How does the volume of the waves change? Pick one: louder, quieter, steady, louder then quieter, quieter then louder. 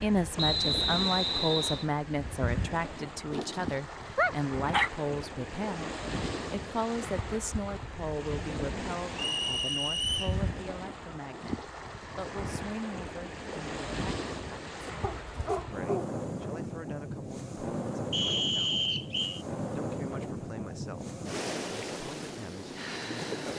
steady.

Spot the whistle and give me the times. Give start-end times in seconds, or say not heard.
0.3-1.9, 9.2-10.4, 18.1-19.4.